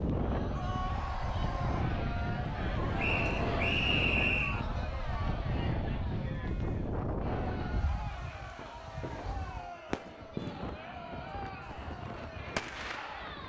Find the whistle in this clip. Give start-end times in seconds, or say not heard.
3.0-4.7.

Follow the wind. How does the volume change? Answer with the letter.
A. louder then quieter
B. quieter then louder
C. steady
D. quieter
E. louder
D.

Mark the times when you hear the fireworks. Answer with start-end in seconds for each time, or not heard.
8.4-13.4.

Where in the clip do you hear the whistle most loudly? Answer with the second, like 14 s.
4 s.